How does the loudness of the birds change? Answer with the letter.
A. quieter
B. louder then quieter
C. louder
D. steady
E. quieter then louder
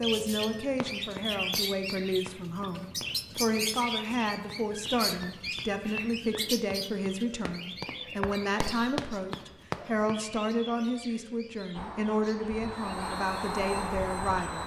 A.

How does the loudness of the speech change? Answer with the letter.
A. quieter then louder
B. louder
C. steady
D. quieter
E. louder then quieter
C.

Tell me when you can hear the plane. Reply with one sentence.
You can hear the plane from 11.7 to 14.6 s.